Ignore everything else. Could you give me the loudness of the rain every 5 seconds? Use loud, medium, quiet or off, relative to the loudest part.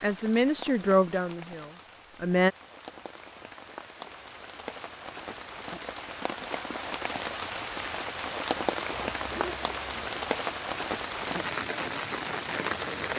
quiet, loud, loud.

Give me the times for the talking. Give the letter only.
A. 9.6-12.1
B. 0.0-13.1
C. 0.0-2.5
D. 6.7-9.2
C.